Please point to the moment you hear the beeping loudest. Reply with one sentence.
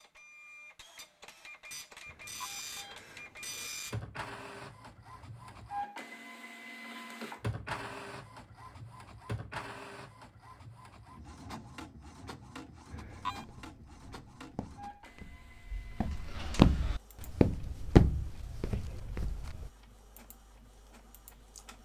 The volume of the beeping peaks at 13 seconds.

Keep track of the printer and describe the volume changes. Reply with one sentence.
The loudness of the printer goes down.